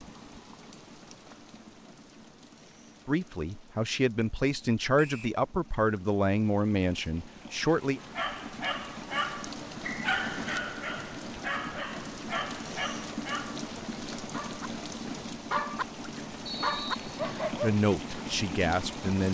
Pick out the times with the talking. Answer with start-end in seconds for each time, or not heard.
3.0-8.0, 17.6-19.2.